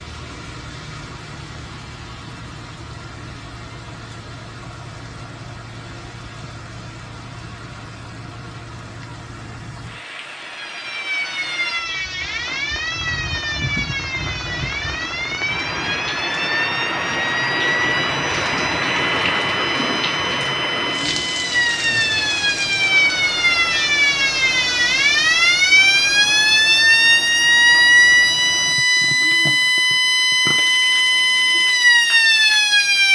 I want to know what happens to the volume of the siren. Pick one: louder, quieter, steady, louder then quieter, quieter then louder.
louder.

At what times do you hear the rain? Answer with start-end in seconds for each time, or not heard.
0.0-33.1.